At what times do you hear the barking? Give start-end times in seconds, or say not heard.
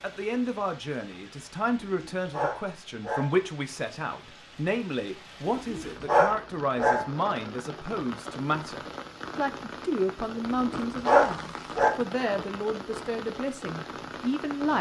1.8-3.4, 5.5-7.1, 10.7-11.9.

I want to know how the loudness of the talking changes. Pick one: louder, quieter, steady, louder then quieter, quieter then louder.
steady.